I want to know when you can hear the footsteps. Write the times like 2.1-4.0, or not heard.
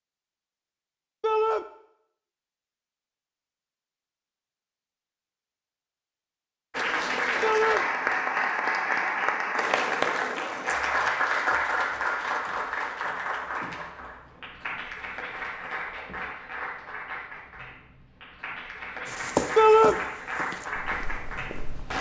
19.1-21.9.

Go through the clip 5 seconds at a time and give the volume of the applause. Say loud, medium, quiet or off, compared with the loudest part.
off, loud, loud, medium, medium.